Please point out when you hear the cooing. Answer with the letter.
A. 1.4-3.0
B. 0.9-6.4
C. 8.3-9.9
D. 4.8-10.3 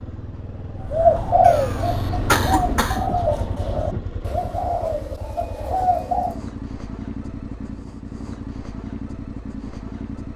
B.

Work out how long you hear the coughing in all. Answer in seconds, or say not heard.
2 s.